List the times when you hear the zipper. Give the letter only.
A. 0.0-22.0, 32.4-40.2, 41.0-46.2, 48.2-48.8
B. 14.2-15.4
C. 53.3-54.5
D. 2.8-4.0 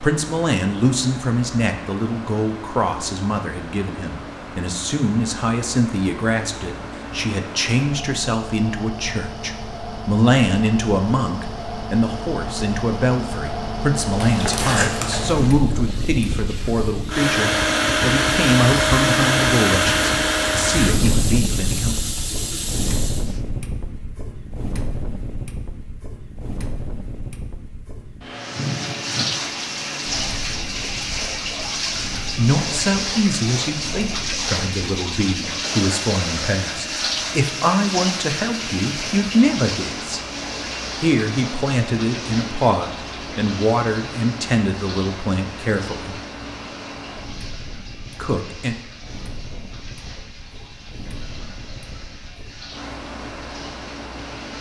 B.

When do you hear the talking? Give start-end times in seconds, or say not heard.
0.0-22.0, 32.4-40.2, 41.0-46.2, 48.2-48.8.